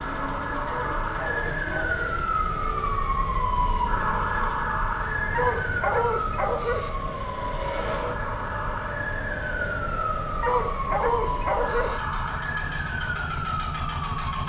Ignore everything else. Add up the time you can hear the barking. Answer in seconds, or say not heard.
5 s.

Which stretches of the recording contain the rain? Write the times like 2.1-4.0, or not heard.
not heard.